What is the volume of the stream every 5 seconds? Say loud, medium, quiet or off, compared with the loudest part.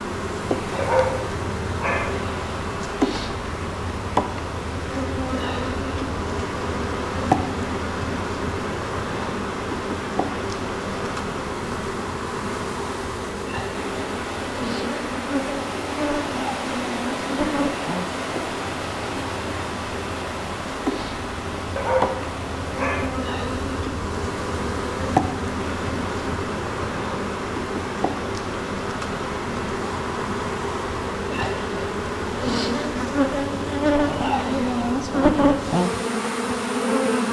medium, medium, medium, loud, medium, medium, medium, medium.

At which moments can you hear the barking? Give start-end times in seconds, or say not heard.
0.8-2.1, 21.8-23.1.